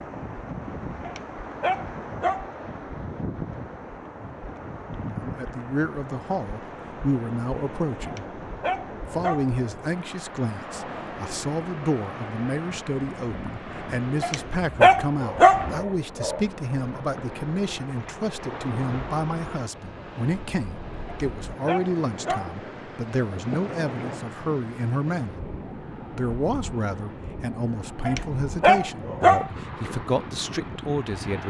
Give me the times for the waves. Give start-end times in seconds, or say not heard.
0.0-31.4.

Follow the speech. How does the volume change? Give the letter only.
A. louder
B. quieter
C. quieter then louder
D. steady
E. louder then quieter
D.